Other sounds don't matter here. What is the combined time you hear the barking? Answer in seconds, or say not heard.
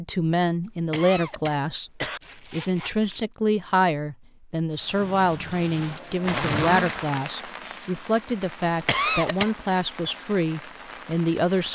not heard.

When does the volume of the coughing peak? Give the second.
9 s.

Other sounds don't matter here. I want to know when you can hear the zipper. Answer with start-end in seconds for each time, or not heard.
2.2-3.3, 6.2-7.0.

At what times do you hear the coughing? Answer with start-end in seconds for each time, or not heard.
0.7-2.2, 8.8-9.5.